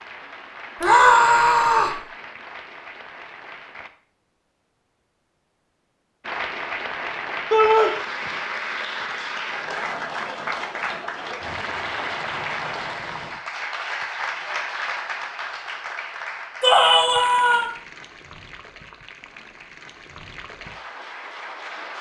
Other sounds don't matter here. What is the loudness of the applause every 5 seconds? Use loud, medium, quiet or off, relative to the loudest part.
medium, loud, loud, medium, medium.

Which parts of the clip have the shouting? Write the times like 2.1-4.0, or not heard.
0.8-2.0, 7.5-7.9, 16.6-17.6.